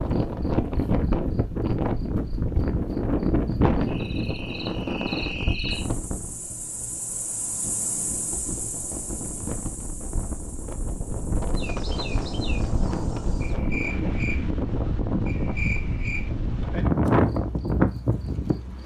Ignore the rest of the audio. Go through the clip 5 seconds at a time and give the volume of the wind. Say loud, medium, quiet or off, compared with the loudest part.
loud, medium, medium, loud.